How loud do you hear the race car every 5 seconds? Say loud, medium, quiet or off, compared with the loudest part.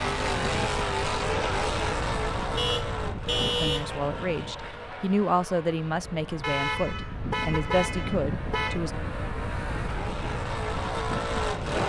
loud, medium, loud.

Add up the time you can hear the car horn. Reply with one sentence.
The car horn can be heard for 4 seconds in total.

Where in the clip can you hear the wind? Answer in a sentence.
You can hear the wind from 0.0 to 11.8 s.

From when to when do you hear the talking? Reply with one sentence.
The talking can be heard from 3.5 to 8.9 s.